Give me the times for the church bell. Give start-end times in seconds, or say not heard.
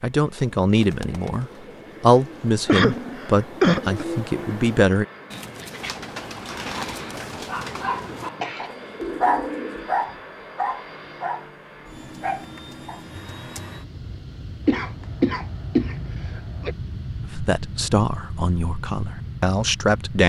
not heard.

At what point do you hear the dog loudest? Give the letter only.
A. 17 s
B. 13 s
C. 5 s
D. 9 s
D.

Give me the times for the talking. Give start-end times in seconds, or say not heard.
0.0-5.0, 17.3-20.2.